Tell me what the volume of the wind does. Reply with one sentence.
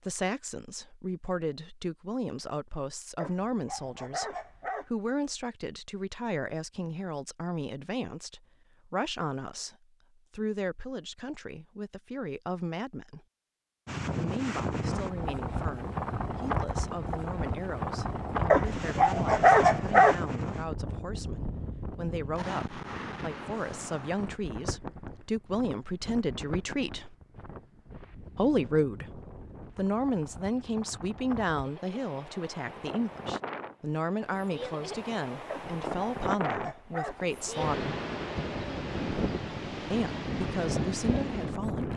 The volume of the wind goes down, then up.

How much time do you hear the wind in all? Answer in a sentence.
You can hear the wind for 28 seconds altogether.